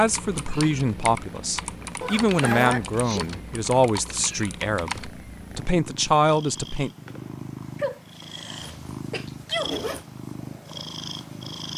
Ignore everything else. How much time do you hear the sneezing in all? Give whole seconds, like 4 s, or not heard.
3 s.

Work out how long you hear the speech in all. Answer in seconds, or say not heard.
7 s.